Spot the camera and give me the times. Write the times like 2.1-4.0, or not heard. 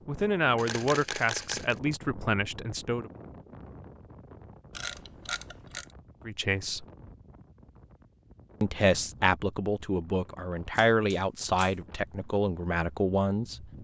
0.6-1.8, 4.7-5.8, 10.7-11.8.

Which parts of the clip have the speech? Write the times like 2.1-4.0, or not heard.
0.1-3.1, 6.2-6.8, 8.6-13.7.